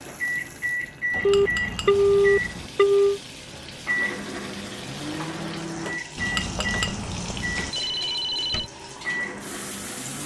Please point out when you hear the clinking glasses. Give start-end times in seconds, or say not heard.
1.1-2.7, 6.2-7.7.